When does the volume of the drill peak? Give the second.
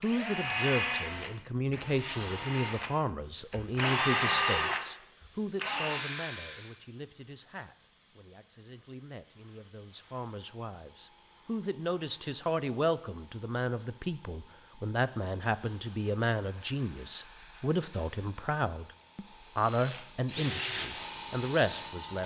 4 s.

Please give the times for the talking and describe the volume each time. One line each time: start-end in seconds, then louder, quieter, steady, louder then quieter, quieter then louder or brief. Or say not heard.
0.0-22.2 quieter then louder.